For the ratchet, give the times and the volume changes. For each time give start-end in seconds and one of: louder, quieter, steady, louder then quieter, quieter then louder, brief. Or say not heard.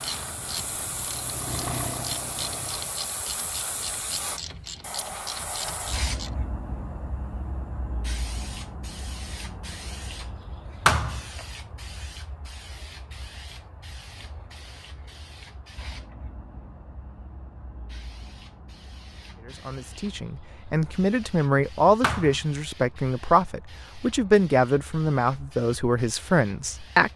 0.0-6.3 steady.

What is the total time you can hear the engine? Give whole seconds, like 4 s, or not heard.
3 s.